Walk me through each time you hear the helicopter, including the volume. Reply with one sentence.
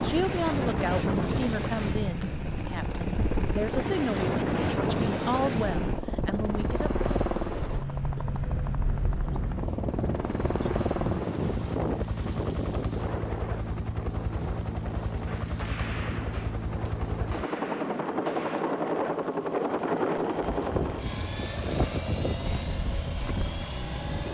You can hear the helicopter from 0.0 to 24.2 s, at a steady volume.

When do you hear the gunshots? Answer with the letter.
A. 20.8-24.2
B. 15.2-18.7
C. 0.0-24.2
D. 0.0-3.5
B.